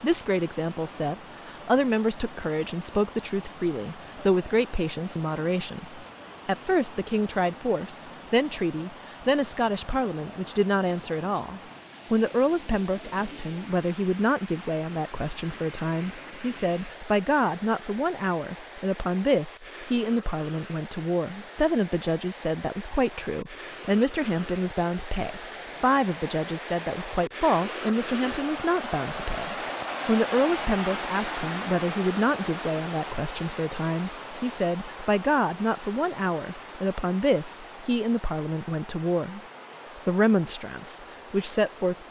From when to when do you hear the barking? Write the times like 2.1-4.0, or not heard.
not heard.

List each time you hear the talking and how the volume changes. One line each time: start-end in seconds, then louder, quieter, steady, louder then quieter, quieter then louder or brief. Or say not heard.
0.0-39.4 steady
40.0-42.0 brief.